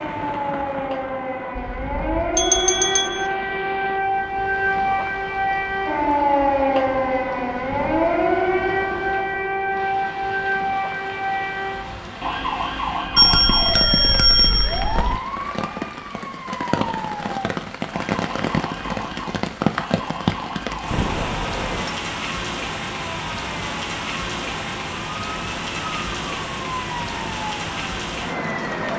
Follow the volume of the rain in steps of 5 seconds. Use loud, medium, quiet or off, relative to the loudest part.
medium, quiet, medium, loud, loud, loud.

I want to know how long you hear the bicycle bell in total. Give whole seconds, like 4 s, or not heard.
4 s.